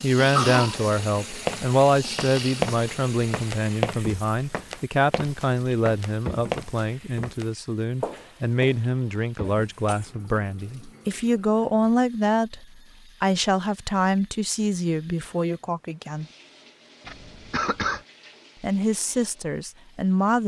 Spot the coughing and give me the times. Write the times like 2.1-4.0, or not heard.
0.1-0.8, 9.4-10.1, 17.1-18.0.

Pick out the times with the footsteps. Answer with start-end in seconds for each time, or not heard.
0.7-9.2.